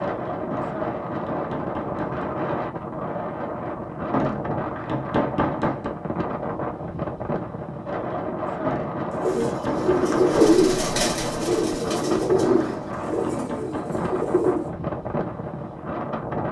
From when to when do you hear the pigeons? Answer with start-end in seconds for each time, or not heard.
9.1-14.8.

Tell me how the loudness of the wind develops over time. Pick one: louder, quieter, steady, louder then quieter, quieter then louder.
steady.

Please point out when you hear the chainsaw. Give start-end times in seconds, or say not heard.
not heard.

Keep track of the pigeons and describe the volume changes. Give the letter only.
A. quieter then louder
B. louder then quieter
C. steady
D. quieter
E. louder
D.